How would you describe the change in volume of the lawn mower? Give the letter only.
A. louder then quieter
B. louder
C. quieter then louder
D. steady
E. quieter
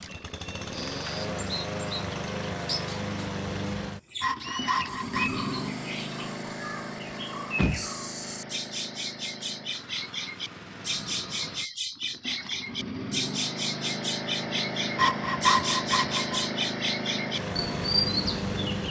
C.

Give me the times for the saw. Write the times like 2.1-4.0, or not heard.
4.2-5.5, 14.9-16.2.